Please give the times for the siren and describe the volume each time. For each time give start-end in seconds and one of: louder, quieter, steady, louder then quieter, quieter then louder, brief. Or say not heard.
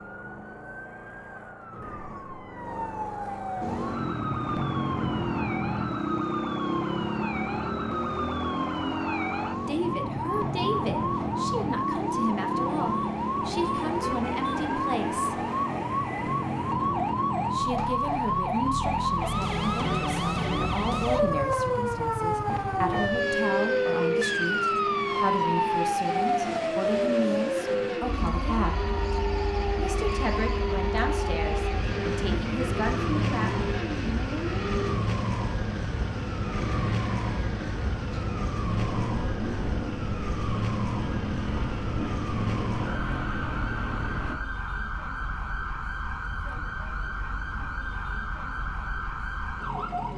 0.0-50.1 louder then quieter.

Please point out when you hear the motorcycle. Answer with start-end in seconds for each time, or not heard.
3.6-44.4.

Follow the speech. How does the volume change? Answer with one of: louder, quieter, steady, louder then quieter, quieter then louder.
steady.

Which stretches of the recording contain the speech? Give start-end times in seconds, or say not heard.
9.7-15.4, 17.5-28.9, 29.8-33.6.